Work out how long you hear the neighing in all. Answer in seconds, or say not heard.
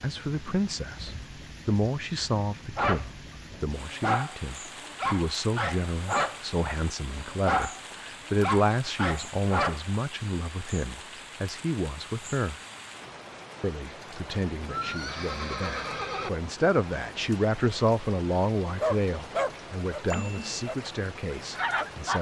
2 s.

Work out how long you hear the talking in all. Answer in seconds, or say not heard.
21 s.